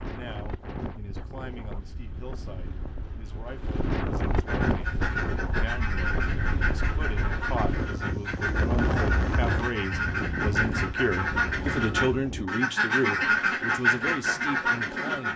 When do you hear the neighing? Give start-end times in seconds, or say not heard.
not heard.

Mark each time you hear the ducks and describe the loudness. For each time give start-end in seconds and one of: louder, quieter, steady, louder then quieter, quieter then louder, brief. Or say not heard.
4.5-15.3 louder.